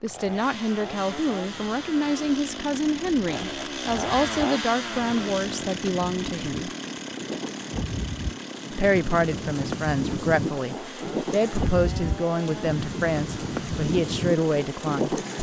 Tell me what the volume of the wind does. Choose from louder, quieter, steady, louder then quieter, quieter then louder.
louder.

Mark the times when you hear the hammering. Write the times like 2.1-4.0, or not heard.
not heard.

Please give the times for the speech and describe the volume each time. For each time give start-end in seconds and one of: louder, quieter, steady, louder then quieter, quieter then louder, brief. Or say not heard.
0.0-6.7 steady
8.7-15.2 steady.